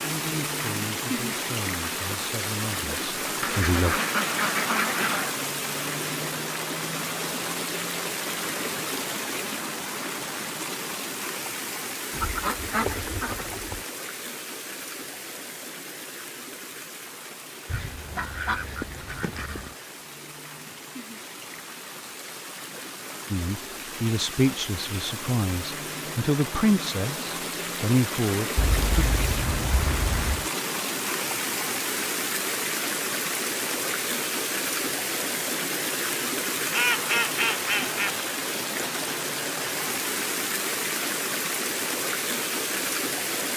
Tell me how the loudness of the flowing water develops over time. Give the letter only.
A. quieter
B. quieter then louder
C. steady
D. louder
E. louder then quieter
B.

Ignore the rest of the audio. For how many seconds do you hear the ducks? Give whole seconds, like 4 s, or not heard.
9 s.